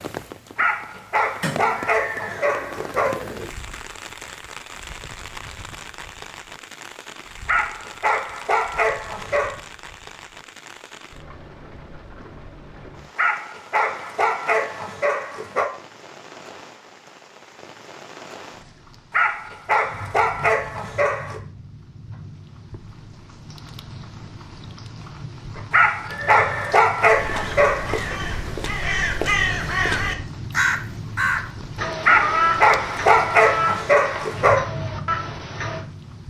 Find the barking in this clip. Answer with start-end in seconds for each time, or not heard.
0.6-3.1, 7.5-9.6, 13.2-15.7, 19.1-21.4, 25.7-28.1, 32.0-34.6.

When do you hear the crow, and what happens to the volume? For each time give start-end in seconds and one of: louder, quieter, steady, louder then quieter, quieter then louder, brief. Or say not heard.
27.1-35.9 louder then quieter.